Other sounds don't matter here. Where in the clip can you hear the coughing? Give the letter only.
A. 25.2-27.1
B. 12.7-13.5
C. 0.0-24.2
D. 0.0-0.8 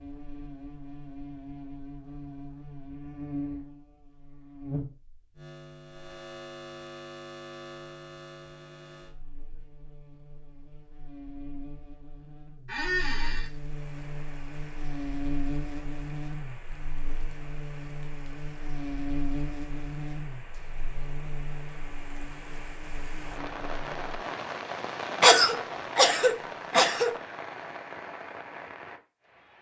A.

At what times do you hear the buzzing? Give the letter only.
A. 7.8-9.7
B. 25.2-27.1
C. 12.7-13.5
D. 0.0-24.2
D.